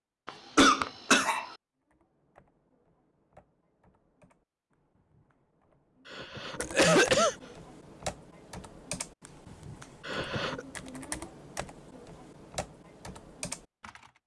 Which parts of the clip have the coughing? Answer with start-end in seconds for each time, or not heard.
0.2-1.6, 6.1-7.3, 10.0-10.7.